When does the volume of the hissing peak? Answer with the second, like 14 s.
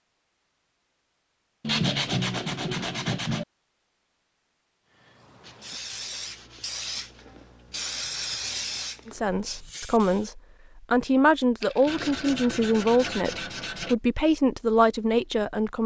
8 s.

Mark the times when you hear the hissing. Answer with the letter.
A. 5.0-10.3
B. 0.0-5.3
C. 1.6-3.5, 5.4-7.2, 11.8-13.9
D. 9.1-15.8
A.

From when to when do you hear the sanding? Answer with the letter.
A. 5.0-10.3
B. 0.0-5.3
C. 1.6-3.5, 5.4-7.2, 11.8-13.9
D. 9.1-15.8
C.